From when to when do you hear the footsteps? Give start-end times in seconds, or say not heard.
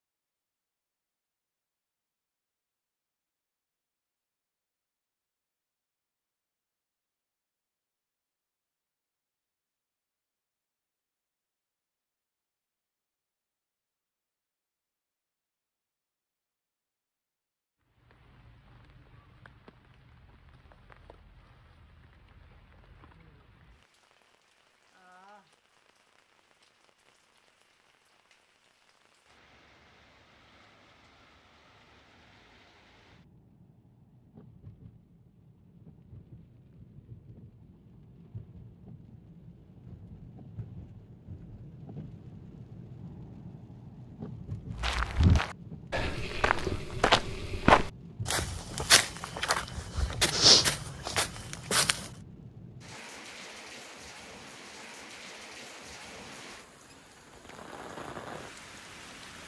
44.8-52.1.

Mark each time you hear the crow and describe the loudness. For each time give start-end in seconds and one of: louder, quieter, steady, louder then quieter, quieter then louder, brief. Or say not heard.
not heard.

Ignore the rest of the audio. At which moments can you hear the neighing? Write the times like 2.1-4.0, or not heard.
not heard.